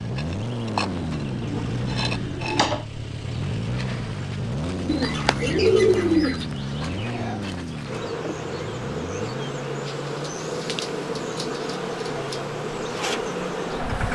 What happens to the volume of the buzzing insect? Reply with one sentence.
The volume of the buzzing insect goes down, then up.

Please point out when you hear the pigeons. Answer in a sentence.
The pigeons can be heard from 0.8 to 2.8 s, from 4.8 to 6.5 s and from 9.8 to 12.4 s.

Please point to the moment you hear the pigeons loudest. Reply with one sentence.
The volume of the pigeons peaks at 6 seconds.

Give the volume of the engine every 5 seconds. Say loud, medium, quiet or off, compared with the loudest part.
loud, loud, medium.